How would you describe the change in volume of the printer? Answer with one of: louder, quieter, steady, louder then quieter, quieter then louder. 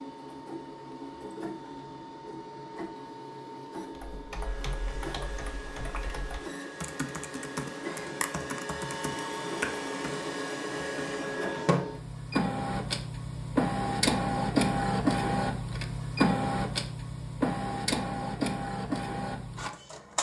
louder.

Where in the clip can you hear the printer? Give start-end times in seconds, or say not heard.
0.0-20.1.